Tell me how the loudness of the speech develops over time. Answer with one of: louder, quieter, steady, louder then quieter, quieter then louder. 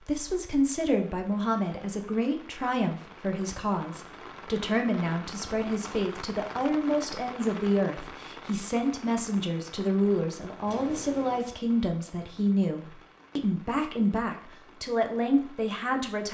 steady.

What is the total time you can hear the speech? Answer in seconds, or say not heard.
16 s.